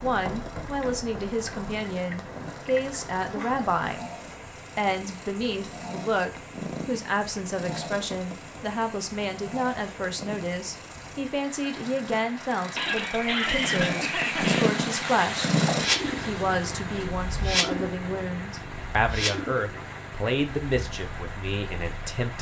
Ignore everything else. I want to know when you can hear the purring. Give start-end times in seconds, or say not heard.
0.0-22.2.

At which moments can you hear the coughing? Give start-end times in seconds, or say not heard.
12.8-14.7.